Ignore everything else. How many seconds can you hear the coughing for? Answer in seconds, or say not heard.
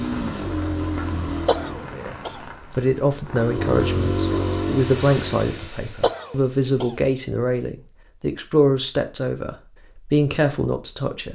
2 s.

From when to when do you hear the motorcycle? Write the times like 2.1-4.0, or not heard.
0.0-1.9, 3.2-5.7.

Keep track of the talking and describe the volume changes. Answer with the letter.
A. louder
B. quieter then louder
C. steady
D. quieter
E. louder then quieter
C.